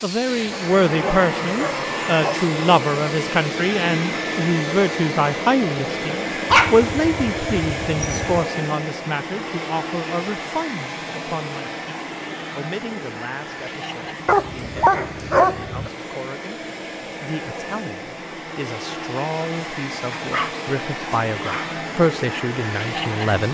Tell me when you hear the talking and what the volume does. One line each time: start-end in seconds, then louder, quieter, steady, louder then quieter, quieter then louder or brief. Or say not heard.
0.0-23.4 quieter then louder.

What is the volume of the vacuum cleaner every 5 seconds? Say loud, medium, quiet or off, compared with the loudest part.
loud, loud, medium, medium, loud.